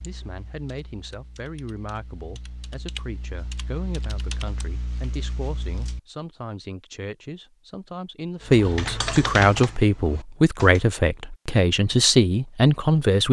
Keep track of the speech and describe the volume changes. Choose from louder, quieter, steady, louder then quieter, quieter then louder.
louder.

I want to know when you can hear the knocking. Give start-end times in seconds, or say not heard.
not heard.